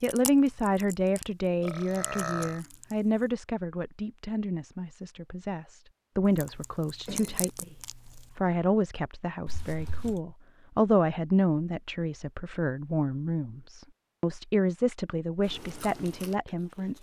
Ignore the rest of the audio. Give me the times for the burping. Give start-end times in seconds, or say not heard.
1.6-2.6, 9.4-10.2.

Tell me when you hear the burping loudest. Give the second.
2 s.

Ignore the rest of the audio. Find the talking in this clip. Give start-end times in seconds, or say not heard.
0.0-16.9.